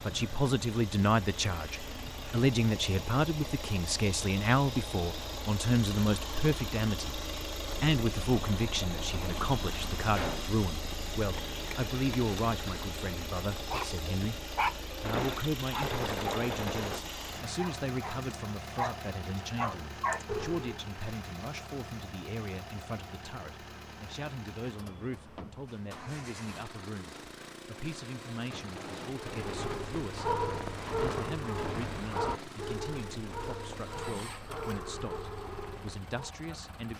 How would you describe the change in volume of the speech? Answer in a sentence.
The volume of the speech goes down.